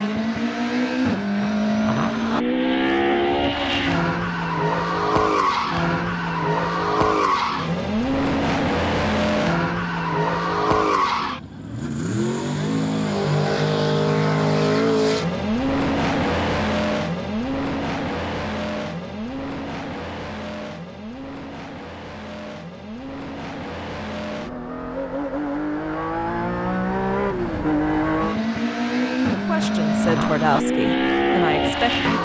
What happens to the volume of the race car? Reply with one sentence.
The loudness of the race car goes down, then up.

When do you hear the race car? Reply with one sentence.
You can hear the race car from 0.0 to 32.2 s.